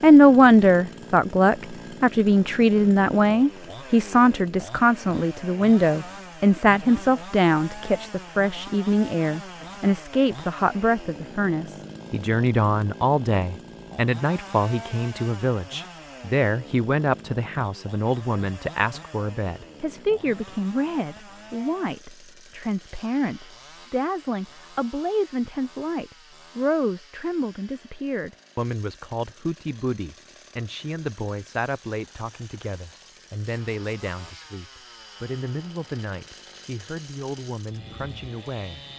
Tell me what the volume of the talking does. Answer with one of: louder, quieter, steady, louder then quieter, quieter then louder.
quieter.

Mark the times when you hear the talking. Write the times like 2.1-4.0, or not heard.
0.0-38.8.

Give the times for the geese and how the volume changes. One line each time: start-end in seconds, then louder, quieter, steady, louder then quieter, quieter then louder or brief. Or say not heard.
not heard.